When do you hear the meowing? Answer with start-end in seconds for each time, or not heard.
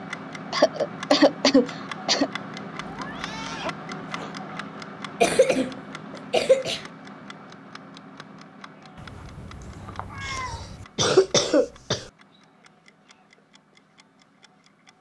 2.8-4.3, 8.9-10.8.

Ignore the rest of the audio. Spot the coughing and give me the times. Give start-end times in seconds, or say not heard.
0.5-2.3, 5.2-6.8, 10.2-12.1.